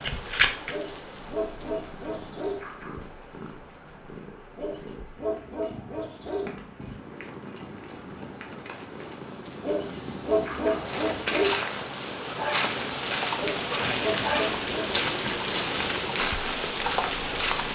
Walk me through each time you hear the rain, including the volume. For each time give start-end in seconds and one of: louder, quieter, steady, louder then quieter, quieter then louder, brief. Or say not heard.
0.0-17.7 quieter then louder.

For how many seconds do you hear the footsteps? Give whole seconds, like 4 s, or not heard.
7 s.